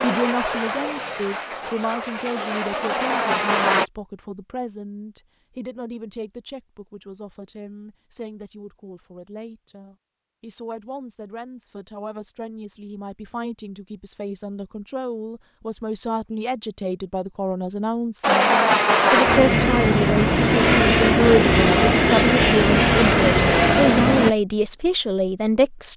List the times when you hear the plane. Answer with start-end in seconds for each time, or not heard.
0.0-3.9, 18.2-24.3.